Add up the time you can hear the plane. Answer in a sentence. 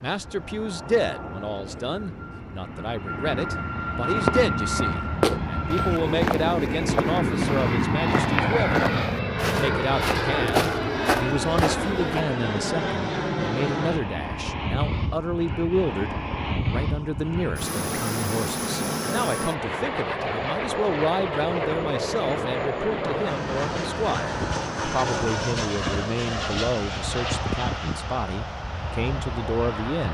The plane can be heard for 30 seconds in total.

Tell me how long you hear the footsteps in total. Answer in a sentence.
You can hear the footsteps for 8 seconds altogether.